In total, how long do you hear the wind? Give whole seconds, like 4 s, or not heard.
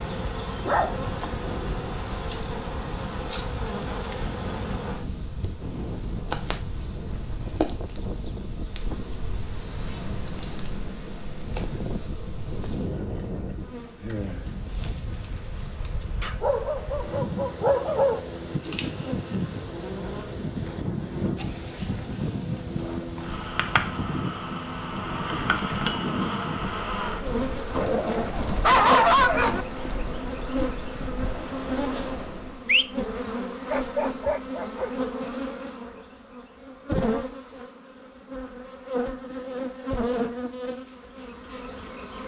33 s.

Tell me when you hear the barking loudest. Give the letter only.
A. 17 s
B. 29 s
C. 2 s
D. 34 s
B.